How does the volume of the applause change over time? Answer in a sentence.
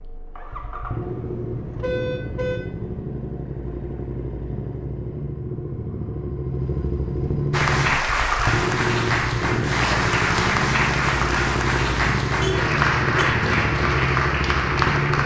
The loudness of the applause stays about the same.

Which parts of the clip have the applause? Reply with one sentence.
You can hear the applause from 7.5 to 15.2 s.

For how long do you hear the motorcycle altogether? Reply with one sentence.
The motorcycle can be heard for 15 seconds in total.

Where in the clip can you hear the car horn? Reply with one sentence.
You can hear the car horn from 1.2 to 3.0 s and from 12.4 to 13.2 s.